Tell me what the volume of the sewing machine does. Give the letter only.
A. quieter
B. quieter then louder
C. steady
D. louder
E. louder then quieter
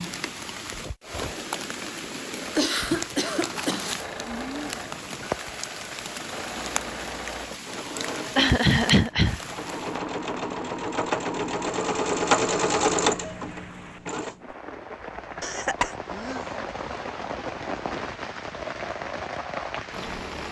D.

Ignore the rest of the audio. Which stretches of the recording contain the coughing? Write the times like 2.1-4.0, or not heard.
2.5-3.9, 8.3-9.4, 15.4-16.4.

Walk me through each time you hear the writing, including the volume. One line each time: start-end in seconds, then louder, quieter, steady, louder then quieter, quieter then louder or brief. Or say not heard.
not heard.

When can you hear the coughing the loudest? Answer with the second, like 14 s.
9 s.